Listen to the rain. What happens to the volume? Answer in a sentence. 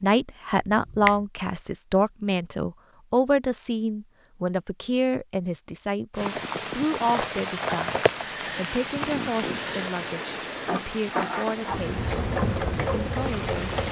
The volume of the rain goes down.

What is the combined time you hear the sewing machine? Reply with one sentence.
You can hear the sewing machine for 3 seconds altogether.